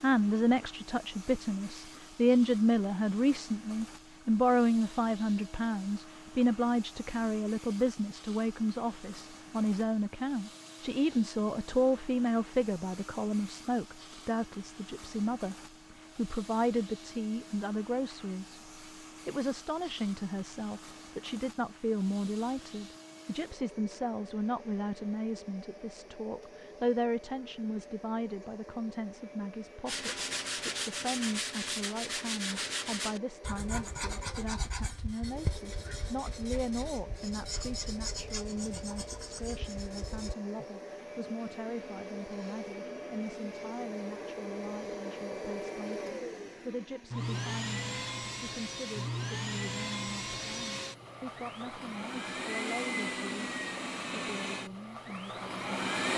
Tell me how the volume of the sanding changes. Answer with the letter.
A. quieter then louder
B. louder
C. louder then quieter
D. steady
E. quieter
E.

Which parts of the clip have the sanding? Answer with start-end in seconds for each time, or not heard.
29.9-40.4.